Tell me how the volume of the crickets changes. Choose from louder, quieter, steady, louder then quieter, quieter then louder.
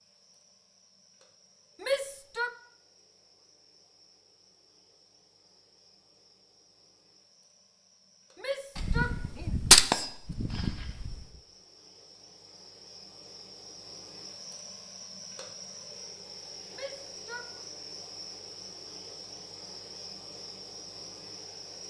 louder.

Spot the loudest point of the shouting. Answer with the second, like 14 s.
2 s.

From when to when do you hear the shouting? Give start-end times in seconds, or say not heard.
1.8-2.5, 8.3-9.6, 16.7-17.4.